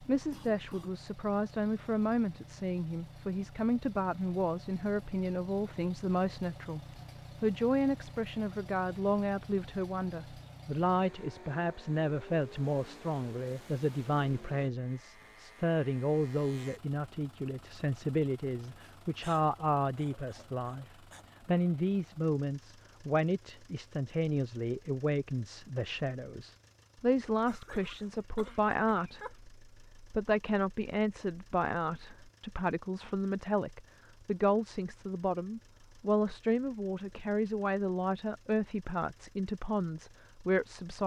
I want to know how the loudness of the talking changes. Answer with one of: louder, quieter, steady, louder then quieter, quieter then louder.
steady.